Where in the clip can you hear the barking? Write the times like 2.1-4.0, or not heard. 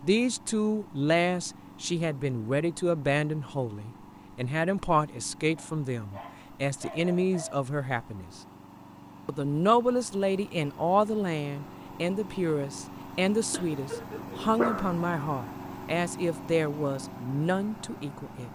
5.5-7.6, 13.5-14.9.